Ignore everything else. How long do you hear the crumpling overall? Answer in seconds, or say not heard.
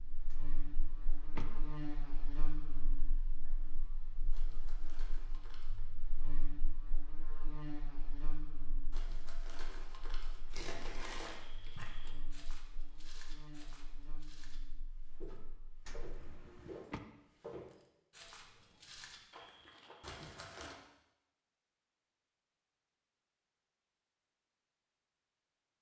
5 s.